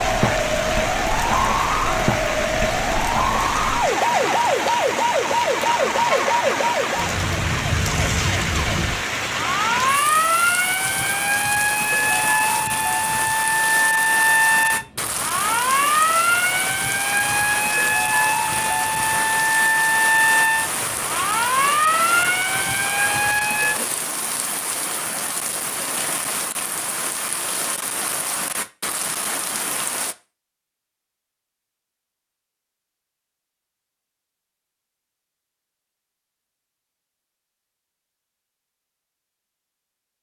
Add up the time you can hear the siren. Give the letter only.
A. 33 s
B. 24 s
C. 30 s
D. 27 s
B.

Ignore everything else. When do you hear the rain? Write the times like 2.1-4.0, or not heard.
0.0-30.1.